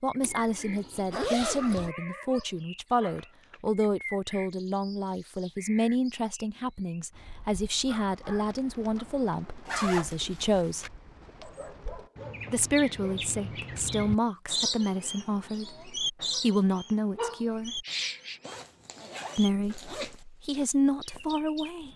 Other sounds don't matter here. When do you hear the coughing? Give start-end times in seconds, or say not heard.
not heard.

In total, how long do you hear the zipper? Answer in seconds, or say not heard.
5 s.